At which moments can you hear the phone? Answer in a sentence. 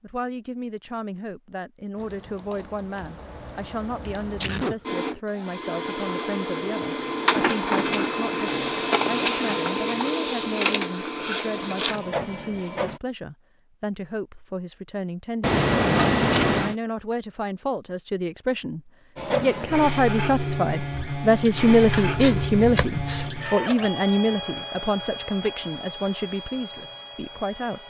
The phone can't be heard in this clip.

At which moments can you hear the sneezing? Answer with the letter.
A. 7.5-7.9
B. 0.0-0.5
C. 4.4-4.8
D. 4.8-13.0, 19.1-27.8
C.